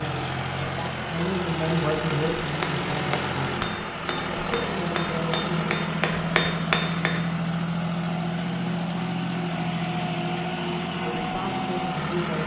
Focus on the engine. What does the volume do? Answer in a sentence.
The loudness of the engine stays about the same.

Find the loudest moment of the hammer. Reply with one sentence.
The volume of the hammer peaks at 7 seconds.